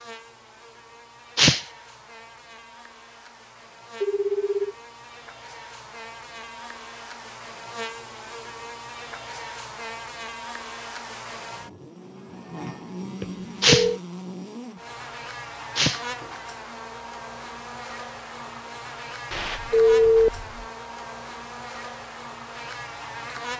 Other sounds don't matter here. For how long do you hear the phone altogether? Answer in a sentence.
The phone can be heard for 3 seconds in total.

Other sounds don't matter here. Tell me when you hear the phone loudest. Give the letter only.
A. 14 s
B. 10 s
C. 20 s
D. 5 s
C.